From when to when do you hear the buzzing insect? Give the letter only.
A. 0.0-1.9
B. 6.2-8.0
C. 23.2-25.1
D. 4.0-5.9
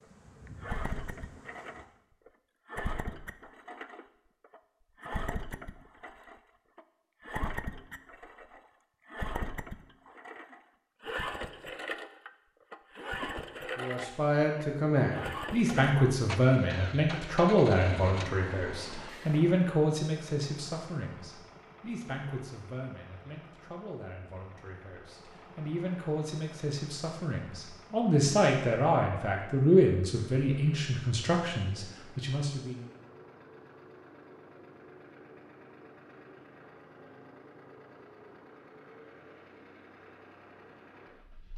A.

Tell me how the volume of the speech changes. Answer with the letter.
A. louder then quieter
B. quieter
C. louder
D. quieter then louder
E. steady
D.